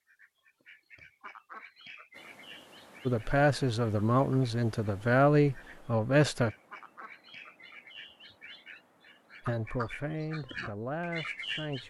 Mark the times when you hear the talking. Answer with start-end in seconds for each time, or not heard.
3.0-6.5, 9.4-11.8.